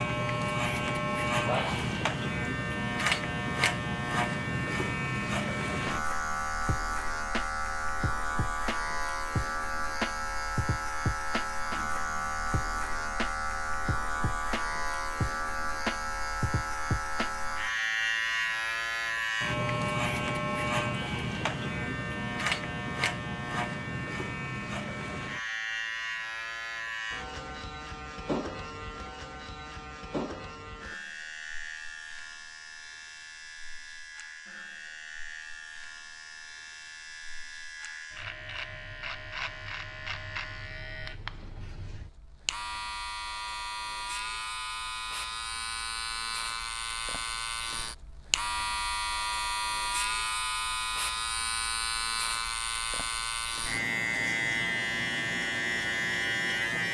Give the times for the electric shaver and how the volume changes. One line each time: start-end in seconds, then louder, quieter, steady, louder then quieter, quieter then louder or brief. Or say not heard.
0.0-56.8 quieter then louder.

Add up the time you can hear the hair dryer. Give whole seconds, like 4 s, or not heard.
not heard.